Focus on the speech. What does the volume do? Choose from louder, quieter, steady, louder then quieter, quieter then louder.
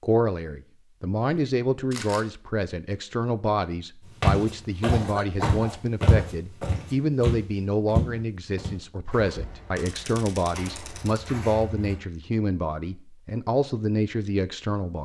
steady.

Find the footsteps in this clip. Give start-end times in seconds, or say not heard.
4.2-11.9.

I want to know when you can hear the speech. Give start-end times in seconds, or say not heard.
0.0-15.0.